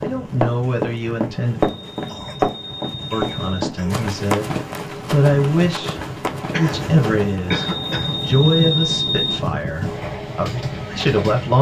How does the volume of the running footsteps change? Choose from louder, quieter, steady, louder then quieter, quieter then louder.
quieter.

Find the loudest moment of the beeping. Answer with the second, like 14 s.
9 s.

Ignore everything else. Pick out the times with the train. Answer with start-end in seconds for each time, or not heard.
0.0-11.5.